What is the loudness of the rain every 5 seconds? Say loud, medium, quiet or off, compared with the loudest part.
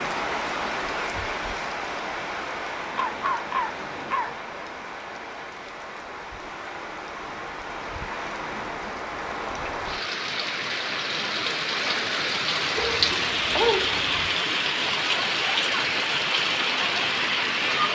medium, medium, loud, loud.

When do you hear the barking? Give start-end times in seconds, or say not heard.
3.0-4.3, 12.8-14.3.